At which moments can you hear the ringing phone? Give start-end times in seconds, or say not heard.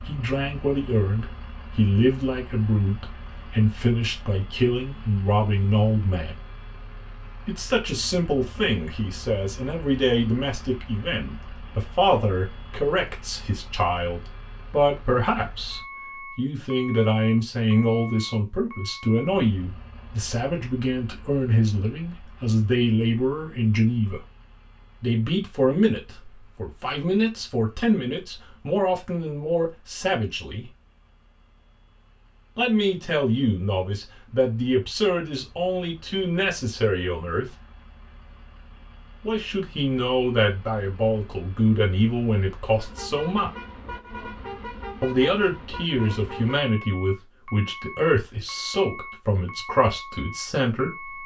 not heard.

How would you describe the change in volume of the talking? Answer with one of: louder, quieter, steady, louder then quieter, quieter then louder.
steady.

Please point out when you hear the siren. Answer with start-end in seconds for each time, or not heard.
not heard.